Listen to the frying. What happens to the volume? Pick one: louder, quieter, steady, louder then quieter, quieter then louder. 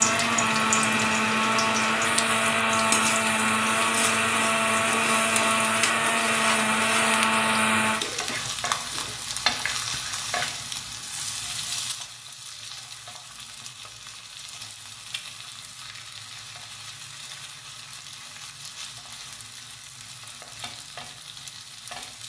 quieter.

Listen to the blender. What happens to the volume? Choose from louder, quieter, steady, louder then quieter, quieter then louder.
steady.